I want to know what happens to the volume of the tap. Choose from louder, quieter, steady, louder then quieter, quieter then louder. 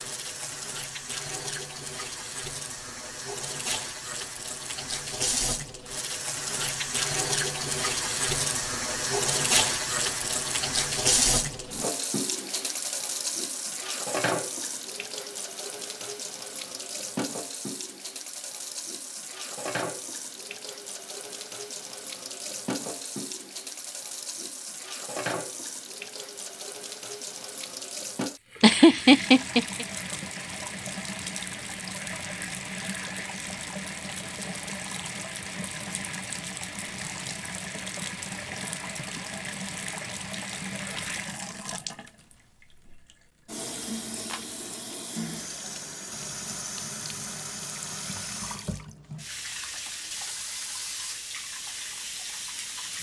quieter.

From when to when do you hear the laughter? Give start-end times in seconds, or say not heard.
28.6-29.9.